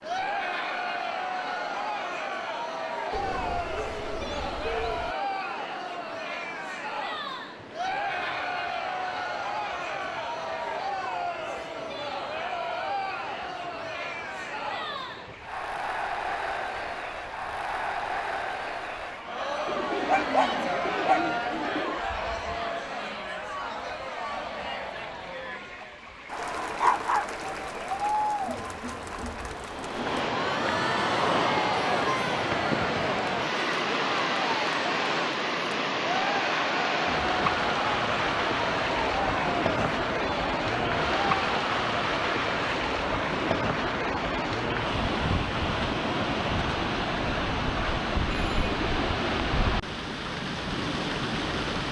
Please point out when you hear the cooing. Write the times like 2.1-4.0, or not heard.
3.1-5.2, 19.6-22.0, 48.3-49.6.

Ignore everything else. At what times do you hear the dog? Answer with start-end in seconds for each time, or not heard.
20.1-21.4, 26.3-27.3.